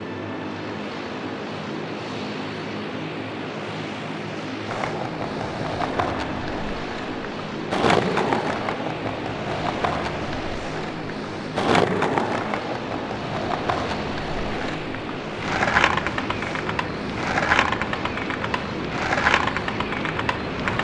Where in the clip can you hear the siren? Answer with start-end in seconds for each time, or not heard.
not heard.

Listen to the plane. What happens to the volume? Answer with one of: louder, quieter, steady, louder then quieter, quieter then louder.
steady.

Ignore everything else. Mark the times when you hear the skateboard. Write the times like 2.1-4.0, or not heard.
4.7-20.7.